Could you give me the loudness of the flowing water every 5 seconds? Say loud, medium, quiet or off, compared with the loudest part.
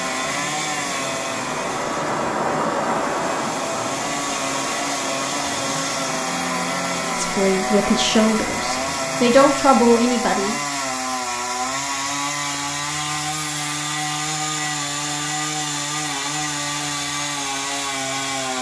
loud, medium, off, off.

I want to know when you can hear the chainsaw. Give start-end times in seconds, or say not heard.
0.0-18.5.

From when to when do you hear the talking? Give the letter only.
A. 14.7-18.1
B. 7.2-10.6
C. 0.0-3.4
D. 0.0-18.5
B.